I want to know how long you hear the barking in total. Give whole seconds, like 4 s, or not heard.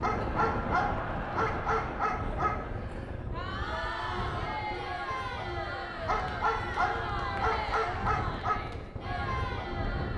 5 s.